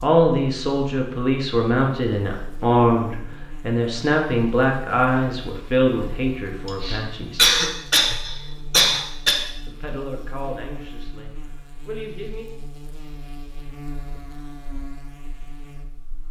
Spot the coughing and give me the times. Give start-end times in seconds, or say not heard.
6.7-9.3.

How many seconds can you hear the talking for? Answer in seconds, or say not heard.
10 s.